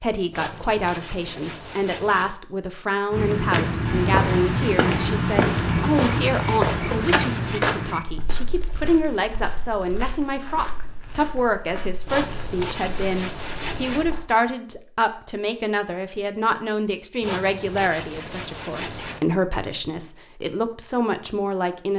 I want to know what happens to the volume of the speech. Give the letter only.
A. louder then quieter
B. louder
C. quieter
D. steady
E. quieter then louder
D.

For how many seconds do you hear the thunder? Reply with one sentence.
The thunder can be heard for 3 seconds in total.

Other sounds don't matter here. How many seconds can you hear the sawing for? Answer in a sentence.
You can hear the sawing for 8 seconds altogether.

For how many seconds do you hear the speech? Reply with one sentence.
The speech can be heard for 22 seconds in total.